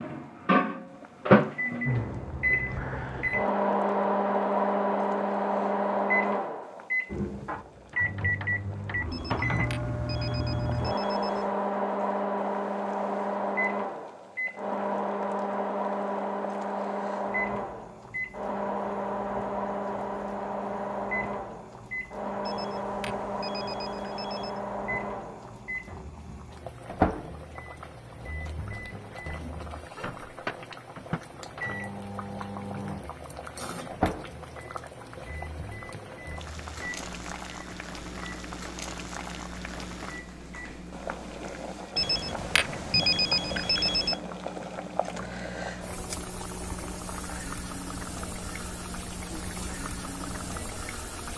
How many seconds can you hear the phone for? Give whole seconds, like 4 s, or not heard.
7 s.